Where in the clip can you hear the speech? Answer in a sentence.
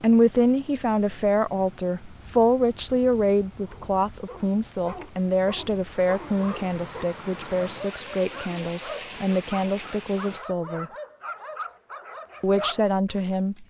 You can hear the speech from 0.0 to 10.9 s and from 12.4 to 13.6 s.